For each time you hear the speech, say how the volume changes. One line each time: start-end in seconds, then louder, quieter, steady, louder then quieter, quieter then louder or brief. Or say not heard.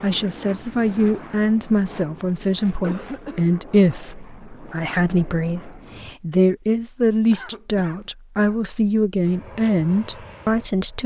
0.0-11.0 steady.